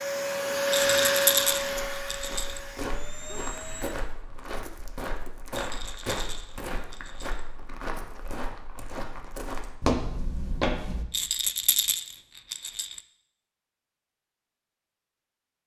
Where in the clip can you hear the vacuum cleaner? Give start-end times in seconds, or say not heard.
0.0-4.0.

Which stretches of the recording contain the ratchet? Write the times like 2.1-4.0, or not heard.
not heard.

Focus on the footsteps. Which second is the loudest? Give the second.
10 s.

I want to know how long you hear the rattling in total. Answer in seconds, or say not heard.
6 s.